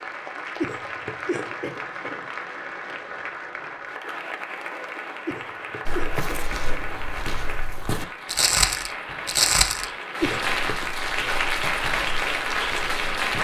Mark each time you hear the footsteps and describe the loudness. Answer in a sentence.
The footsteps can be heard from 5.8 to 13.4 s, getting louder then quieter.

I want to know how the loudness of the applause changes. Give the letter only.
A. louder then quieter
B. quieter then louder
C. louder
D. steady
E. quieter
C.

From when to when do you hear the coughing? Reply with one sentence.
The coughing can be heard from 0.6 to 2.2 s, from 5.2 to 7.0 s and from 10.2 to 10.8 s.